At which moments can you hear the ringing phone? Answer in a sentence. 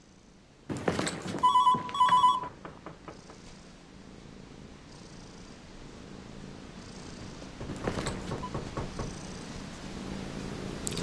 The ringing phone can be heard from 0.7 to 2.5 s and from 7.7 to 8.5 s.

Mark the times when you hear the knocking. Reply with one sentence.
The knocking can be heard from 2.4 to 3.4 s and from 7.4 to 9.2 s.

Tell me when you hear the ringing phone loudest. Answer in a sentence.
The volume of the ringing phone peaks at 2 seconds.